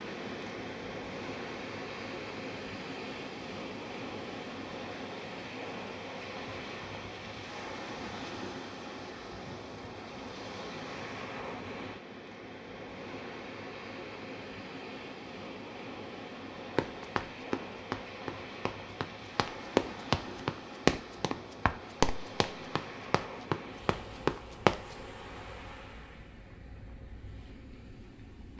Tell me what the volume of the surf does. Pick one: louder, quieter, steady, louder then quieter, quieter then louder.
quieter.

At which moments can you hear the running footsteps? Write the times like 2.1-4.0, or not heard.
16.8-24.9.